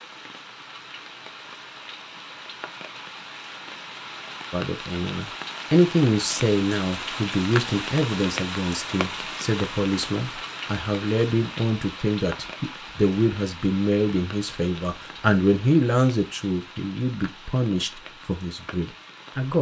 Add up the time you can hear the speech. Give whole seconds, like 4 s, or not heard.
15 s.